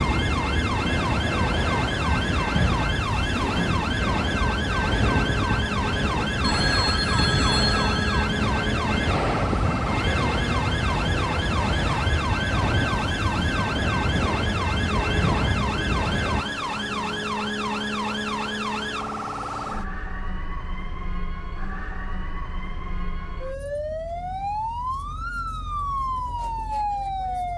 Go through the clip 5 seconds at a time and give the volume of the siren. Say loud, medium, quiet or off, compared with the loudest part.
loud, loud, loud, loud, medium, loud.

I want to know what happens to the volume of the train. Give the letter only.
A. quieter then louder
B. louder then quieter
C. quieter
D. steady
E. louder
D.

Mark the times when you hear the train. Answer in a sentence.
The train can be heard from 0.0 to 16.4 s.